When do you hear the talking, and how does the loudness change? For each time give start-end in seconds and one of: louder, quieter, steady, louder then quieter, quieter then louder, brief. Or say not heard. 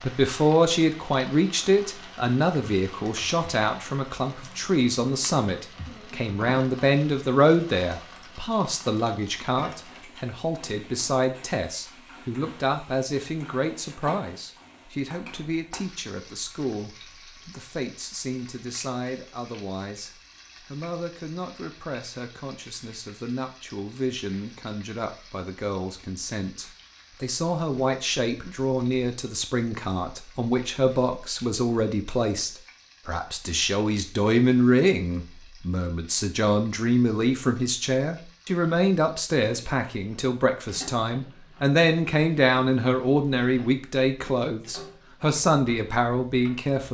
0.0-46.8 quieter then louder.